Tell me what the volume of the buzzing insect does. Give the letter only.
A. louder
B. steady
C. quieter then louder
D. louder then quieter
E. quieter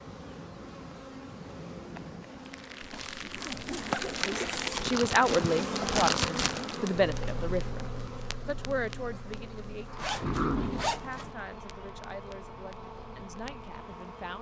D.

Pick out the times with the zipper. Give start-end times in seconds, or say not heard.
3.0-5.0, 9.9-11.3.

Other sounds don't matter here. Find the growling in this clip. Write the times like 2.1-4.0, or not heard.
10.2-10.9.